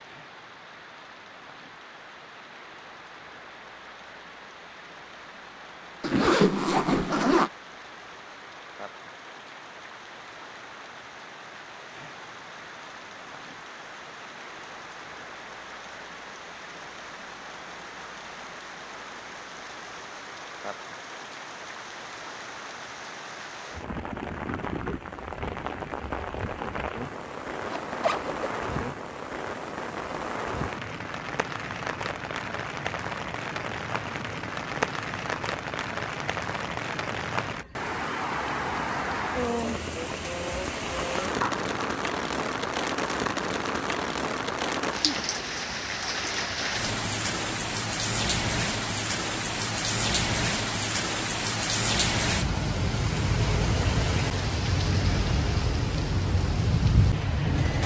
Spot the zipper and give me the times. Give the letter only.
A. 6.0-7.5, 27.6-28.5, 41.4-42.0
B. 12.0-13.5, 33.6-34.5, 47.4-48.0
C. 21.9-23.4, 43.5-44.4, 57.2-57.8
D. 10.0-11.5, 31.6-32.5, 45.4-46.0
A.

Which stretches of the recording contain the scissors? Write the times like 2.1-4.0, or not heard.
not heard.